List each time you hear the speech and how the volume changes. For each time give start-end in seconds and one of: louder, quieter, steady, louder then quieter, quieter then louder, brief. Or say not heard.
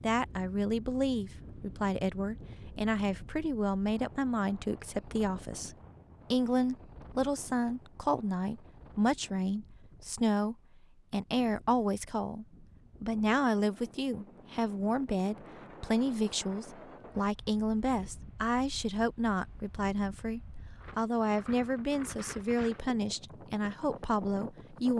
0.0-24.9 steady.